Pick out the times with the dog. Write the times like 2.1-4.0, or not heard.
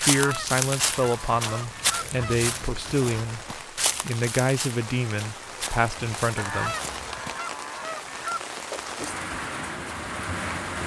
not heard.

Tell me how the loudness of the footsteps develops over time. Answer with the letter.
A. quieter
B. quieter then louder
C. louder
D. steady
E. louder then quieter
A.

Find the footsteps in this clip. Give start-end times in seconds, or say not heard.
0.0-7.4.